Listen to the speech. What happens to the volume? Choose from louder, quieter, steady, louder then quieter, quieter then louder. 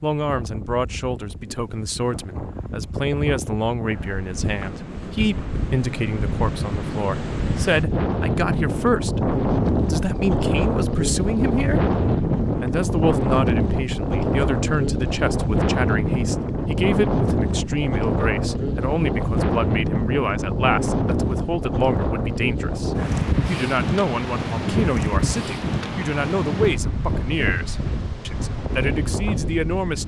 steady.